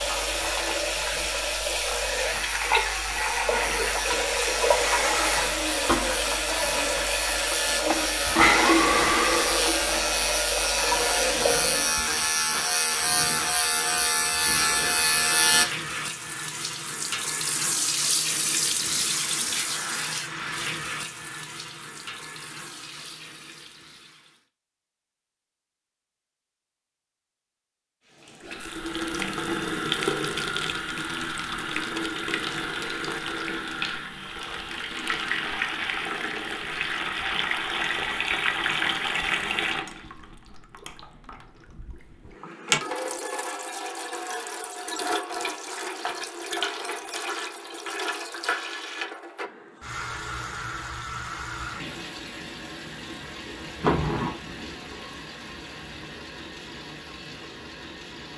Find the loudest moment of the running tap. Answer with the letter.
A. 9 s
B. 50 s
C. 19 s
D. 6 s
A.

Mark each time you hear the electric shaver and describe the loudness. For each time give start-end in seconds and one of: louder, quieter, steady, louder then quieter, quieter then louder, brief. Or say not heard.
0.0-15.7 louder.